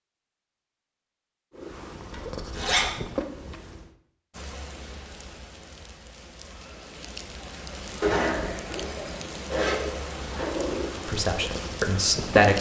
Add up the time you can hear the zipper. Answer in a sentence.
The zipper can be heard for 3 seconds in total.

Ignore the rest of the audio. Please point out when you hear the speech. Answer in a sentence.
The speech can be heard from 11.1 to 12.5 s.